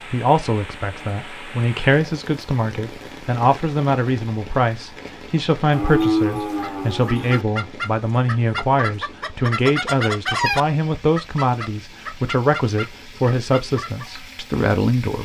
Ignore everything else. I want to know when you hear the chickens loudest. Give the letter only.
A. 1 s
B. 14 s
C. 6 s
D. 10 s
D.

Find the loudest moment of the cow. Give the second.
6 s.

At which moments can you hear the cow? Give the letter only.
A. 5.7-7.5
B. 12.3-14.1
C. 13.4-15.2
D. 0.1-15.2
A.